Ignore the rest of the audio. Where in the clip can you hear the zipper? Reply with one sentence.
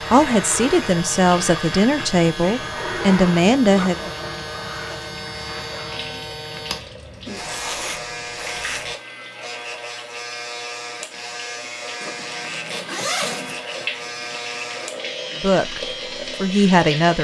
The zipper can be heard from 2.7 to 4.0 s, from 7.3 to 8.9 s and from 12.0 to 13.8 s.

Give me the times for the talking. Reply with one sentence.
The talking can be heard from 0.0 to 4.1 s and from 15.4 to 17.2 s.